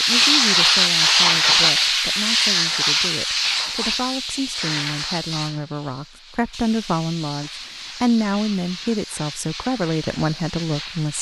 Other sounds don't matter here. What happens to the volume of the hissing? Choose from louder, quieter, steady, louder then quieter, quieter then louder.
quieter.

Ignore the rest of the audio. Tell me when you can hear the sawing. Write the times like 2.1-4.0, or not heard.
not heard.